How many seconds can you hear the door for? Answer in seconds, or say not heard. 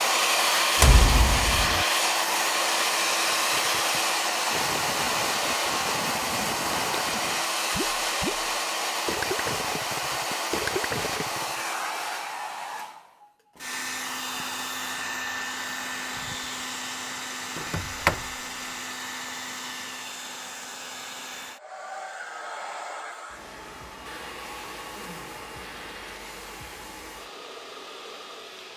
2 s.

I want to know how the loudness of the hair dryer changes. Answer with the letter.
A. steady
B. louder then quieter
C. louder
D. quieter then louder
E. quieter
E.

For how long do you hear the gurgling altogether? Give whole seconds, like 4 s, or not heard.
8 s.